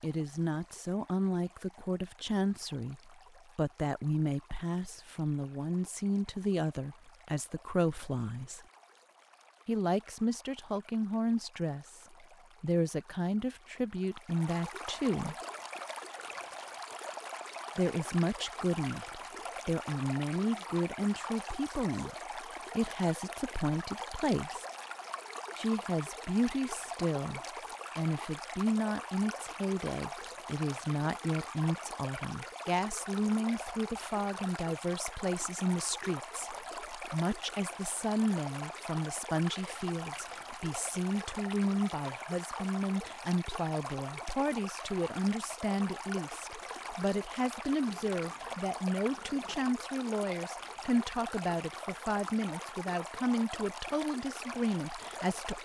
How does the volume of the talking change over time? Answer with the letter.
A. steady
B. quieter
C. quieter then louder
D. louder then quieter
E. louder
A.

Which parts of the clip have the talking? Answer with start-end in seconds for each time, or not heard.
0.0-8.6, 9.7-15.3, 17.8-24.6, 25.6-55.6.